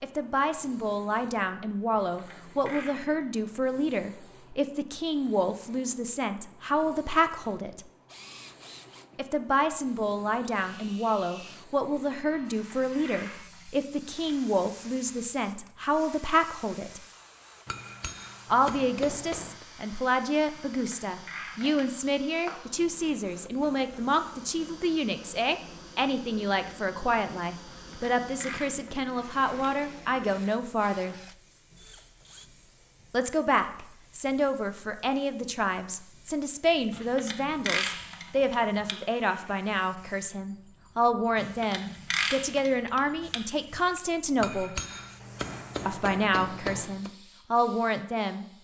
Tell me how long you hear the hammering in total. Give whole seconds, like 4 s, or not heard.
5 s.